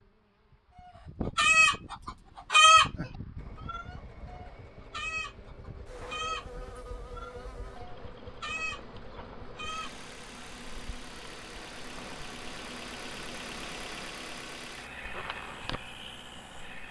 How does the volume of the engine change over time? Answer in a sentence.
The loudness of the engine goes up.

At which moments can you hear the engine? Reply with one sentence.
The engine can be heard from 3.4 to 16.8 s.